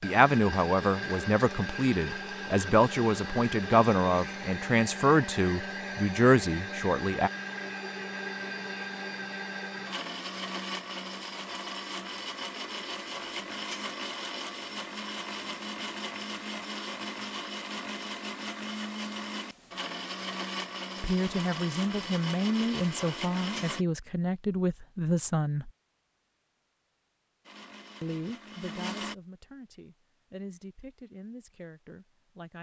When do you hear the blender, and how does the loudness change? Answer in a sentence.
The blender can be heard from 0.0 to 23.9 s, at a steady volume; and briefly from 27.4 to 29.1 s.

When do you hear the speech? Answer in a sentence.
The speech can be heard from 0.0 to 7.3 s, from 21.0 to 25.7 s and from 28.0 to 32.5 s.